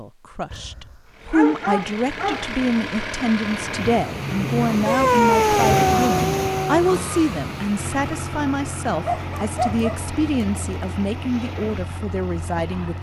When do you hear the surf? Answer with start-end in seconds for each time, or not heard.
3.4-12.9.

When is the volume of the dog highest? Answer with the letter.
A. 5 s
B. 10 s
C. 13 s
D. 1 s
A.